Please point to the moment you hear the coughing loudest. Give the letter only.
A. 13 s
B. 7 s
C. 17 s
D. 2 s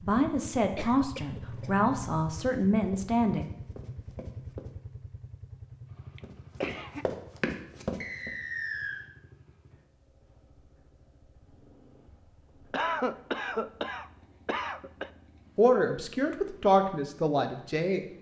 A.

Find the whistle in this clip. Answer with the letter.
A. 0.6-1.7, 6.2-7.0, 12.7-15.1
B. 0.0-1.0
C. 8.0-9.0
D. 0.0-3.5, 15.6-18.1
C.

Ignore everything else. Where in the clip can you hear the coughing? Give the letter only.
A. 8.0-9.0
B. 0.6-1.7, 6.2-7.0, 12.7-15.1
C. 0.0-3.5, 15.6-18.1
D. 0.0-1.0
B.